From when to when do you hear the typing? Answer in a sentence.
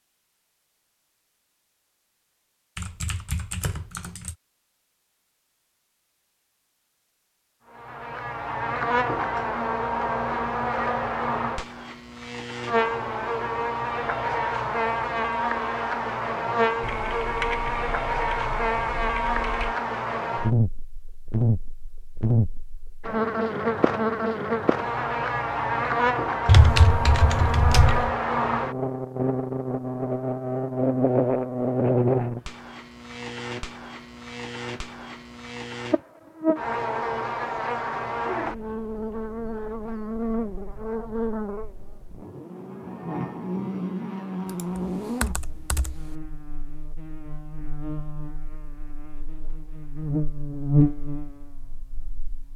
The typing can be heard from 2.8 to 4.3 s, from 16.8 to 19.8 s, from 26.4 to 28.1 s and from 44.5 to 46.0 s.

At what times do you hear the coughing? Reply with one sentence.
You can't hear the coughing here.